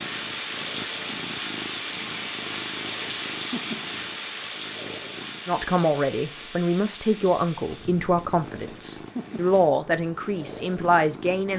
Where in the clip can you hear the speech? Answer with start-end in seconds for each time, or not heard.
5.5-11.5.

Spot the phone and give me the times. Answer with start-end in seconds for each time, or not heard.
not heard.